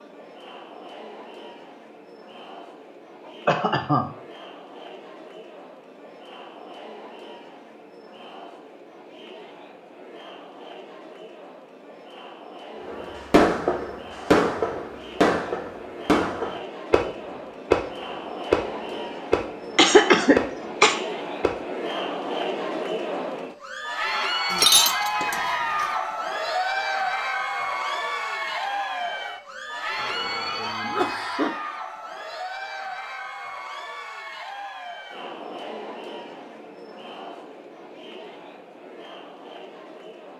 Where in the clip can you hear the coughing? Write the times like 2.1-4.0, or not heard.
3.2-4.0, 19.8-20.9, 29.9-31.6.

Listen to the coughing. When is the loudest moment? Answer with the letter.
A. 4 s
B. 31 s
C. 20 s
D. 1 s
C.